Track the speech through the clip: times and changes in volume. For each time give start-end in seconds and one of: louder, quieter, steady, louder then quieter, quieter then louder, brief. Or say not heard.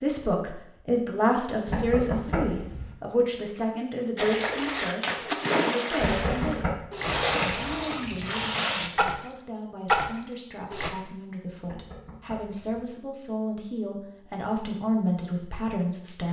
0.0-16.2 quieter then louder.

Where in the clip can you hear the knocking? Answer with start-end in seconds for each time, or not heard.
1.6-3.0, 6.0-6.8, 11.7-12.9.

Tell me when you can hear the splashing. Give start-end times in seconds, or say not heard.
4.2-10.9.